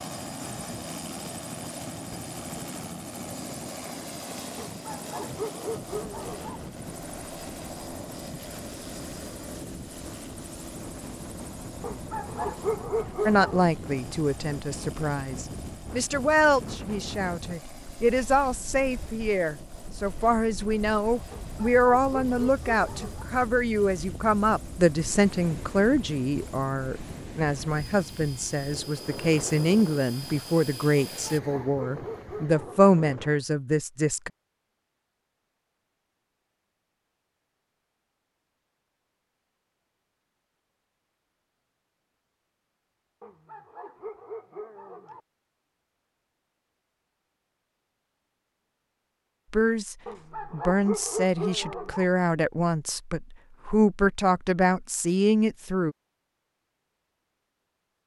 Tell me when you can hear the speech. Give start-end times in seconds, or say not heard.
13.2-34.3, 49.5-56.0.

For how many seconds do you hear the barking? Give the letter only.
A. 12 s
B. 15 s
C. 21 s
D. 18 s
A.